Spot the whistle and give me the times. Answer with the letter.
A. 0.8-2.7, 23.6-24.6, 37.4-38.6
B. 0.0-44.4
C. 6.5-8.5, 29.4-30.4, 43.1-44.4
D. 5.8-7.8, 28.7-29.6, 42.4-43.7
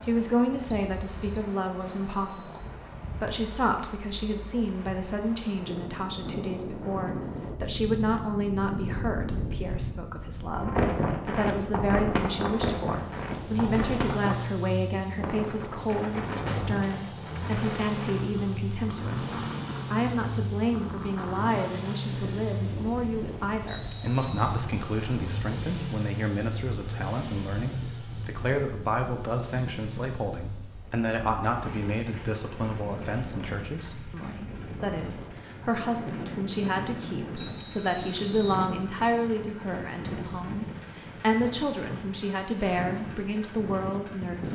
A.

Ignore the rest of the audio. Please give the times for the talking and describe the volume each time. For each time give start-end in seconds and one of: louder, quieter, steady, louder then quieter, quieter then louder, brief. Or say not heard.
0.0-44.4 steady.